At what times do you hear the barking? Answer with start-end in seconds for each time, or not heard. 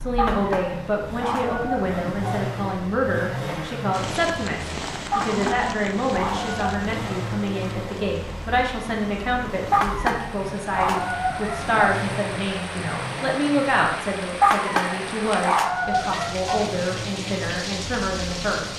0.1-2.5, 5.1-6.7, 9.7-11.8, 14.4-16.7.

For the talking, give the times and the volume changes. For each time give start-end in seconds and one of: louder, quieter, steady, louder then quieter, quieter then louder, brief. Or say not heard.
0.1-18.7 steady.